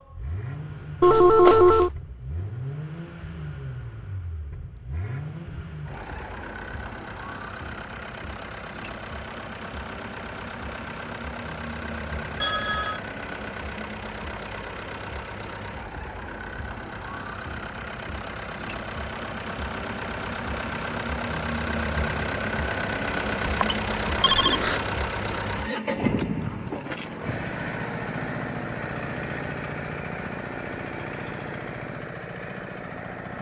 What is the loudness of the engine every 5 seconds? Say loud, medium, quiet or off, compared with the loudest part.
medium, medium, medium, medium, loud, loud, medium.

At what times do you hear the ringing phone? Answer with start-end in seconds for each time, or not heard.
1.0-1.9, 12.3-13.0, 23.4-24.8.